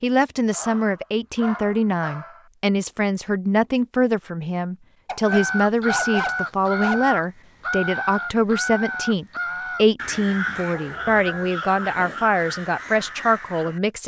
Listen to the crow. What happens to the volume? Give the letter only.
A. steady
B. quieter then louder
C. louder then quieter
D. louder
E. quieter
E.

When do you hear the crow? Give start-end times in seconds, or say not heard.
5.2-13.8.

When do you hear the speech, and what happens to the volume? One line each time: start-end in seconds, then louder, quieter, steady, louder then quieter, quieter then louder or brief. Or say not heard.
0.0-14.0 steady.